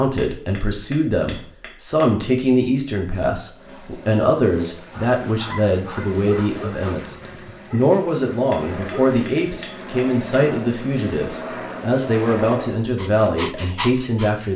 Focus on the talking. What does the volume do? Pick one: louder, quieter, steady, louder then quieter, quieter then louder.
steady.